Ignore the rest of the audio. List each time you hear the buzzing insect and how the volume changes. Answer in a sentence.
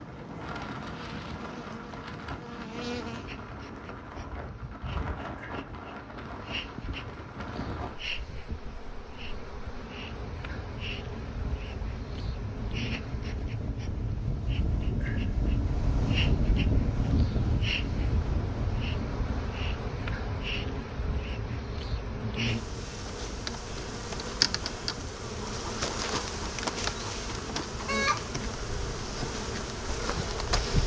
You can hear the buzzing insect from 0.0 to 30.8 s, getting louder.